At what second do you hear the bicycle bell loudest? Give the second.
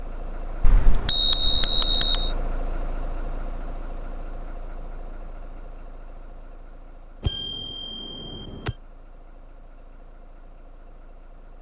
1 s.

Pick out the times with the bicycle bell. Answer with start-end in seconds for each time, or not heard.
0.6-2.3, 7.2-8.8.